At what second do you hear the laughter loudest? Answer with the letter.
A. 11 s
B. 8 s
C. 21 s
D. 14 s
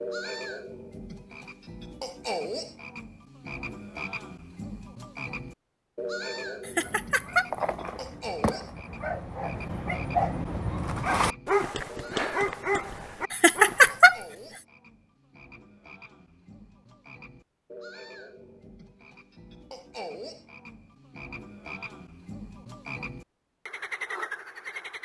D.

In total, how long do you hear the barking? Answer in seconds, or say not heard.
7 s.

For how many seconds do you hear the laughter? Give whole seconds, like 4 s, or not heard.
2 s.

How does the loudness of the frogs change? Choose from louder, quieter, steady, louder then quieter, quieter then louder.
quieter then louder.